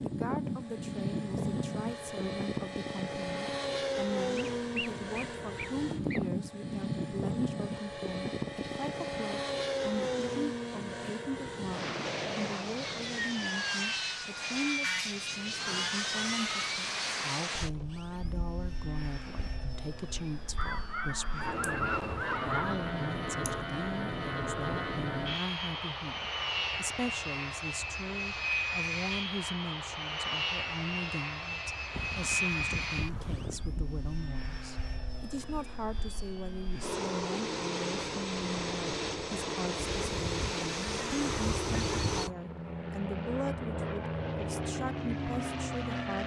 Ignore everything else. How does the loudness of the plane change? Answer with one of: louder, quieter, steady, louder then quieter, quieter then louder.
steady.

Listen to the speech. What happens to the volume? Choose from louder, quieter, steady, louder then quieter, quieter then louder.
steady.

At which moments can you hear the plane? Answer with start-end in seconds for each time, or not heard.
0.0-46.2.